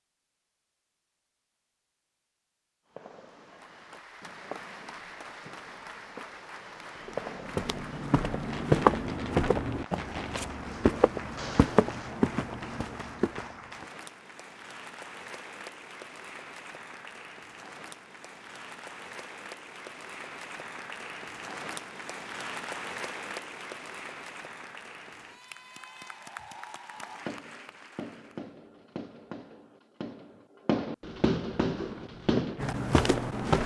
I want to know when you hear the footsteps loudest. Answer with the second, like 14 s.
9 s.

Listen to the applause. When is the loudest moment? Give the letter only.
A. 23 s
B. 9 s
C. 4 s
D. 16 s
A.